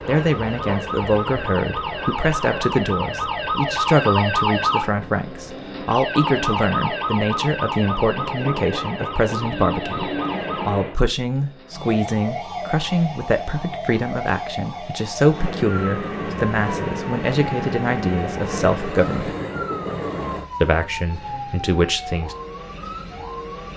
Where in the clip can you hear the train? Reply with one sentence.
You can hear the train from 0.0 to 10.9 s and from 15.3 to 20.4 s.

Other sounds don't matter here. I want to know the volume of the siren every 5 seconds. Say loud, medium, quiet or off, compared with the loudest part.
loud, loud, medium, medium, medium.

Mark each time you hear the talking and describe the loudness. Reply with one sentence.
You can hear the talking from 0.1 to 19.4 s, at a steady volume; and briefly from 20.6 to 22.4 s.